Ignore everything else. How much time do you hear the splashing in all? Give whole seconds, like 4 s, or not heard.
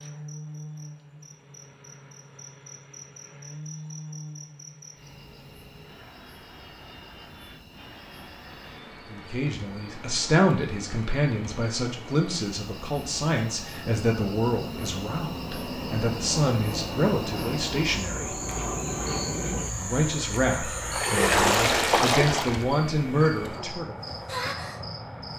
2 s.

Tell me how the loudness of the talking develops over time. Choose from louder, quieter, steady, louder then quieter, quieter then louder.
steady.